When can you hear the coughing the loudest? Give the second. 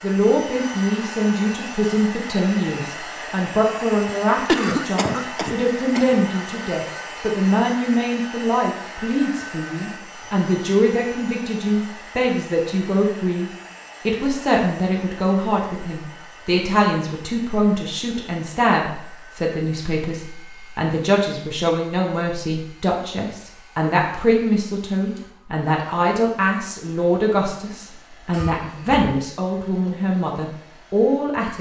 5 s.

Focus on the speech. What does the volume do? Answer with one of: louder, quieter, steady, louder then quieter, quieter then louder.
steady.